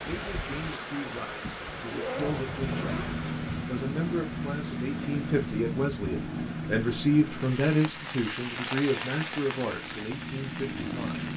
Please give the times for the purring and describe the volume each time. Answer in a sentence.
The purring can be heard from 2.5 to 11.3 s, getting quieter then louder.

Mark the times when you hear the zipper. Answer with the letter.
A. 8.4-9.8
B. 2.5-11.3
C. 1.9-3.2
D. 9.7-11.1
C.